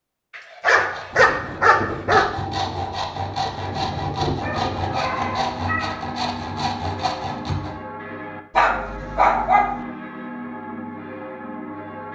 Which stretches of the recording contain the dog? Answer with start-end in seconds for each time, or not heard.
0.3-2.3, 4.4-6.0, 8.6-9.8.